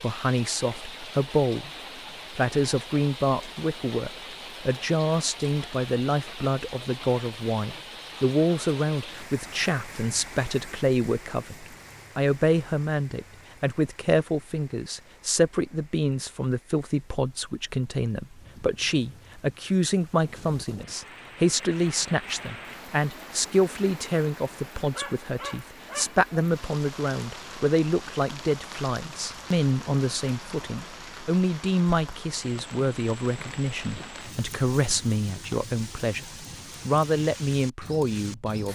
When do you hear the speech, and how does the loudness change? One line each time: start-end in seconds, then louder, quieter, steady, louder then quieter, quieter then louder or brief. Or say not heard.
0.0-1.7 brief
2.4-38.7 steady.